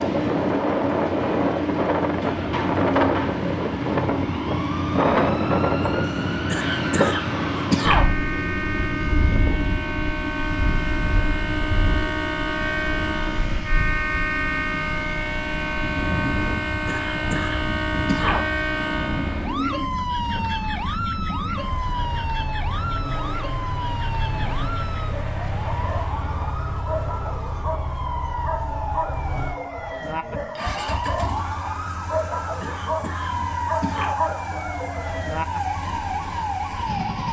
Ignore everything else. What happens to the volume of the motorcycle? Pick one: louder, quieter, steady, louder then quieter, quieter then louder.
quieter.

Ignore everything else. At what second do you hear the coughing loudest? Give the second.
8 s.